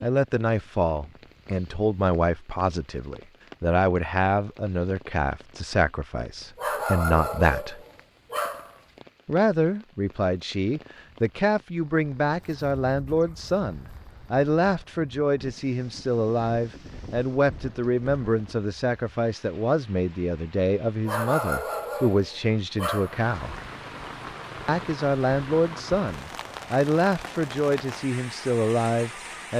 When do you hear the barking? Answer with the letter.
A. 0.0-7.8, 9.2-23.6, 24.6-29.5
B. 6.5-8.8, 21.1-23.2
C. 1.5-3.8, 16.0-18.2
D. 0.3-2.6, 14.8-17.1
B.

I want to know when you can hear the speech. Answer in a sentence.
You can hear the speech from 0.0 to 7.8 s, from 9.2 to 23.6 s and from 24.6 to 29.5 s.